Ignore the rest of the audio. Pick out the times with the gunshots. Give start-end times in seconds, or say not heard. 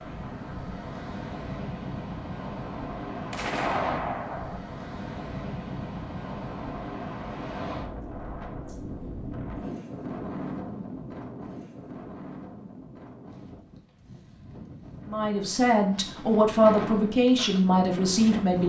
3.3-4.6.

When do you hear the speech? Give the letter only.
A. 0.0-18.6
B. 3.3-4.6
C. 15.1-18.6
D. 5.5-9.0
C.